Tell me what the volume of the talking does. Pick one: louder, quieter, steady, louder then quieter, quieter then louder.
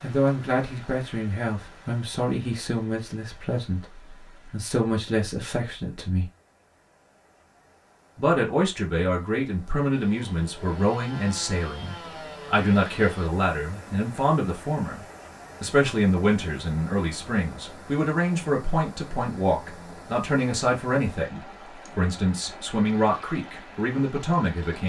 steady.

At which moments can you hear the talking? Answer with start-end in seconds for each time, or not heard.
0.0-6.3, 8.2-24.8.